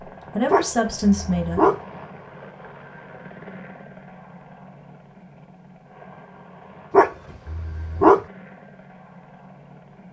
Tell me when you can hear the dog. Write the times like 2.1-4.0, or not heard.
0.5-1.8, 6.9-8.2.